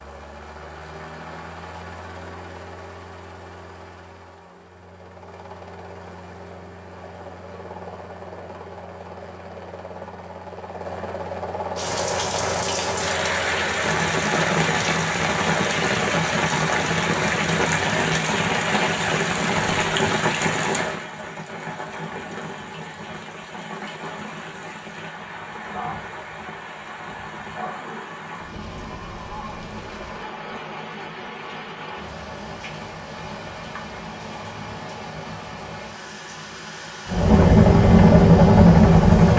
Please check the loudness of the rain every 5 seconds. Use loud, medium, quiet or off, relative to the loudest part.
off, off, loud, loud, medium, quiet, quiet, quiet.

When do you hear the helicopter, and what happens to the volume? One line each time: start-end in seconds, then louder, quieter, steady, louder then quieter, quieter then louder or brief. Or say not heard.
0.0-19.9 louder
37.0-39.3 brief.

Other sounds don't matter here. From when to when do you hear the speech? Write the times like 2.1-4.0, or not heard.
not heard.